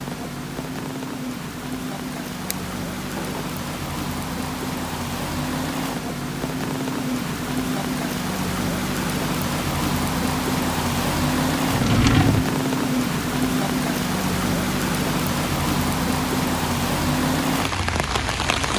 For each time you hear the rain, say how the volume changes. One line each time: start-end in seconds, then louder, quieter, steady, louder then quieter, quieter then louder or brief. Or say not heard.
0.0-18.7 louder.